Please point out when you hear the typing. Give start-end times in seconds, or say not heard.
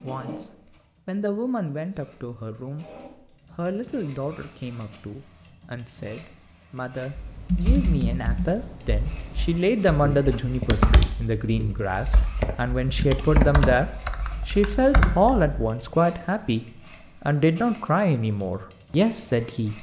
7.2-15.7.